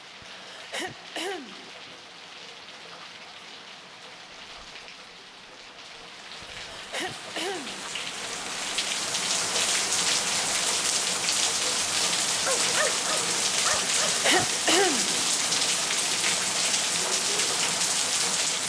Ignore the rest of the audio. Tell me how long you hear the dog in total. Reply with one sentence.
The dog can be heard for 2 seconds in total.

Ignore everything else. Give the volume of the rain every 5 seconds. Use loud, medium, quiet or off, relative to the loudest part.
quiet, medium, loud, loud.